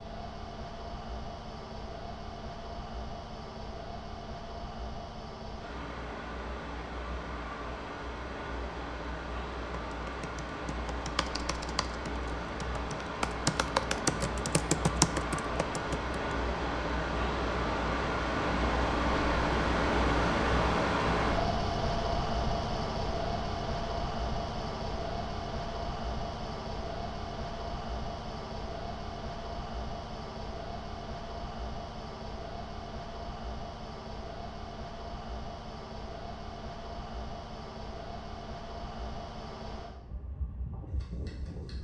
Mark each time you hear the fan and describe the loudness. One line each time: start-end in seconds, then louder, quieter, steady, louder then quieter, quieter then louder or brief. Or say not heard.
0.0-41.7 louder then quieter.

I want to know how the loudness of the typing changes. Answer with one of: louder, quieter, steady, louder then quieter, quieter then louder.
louder.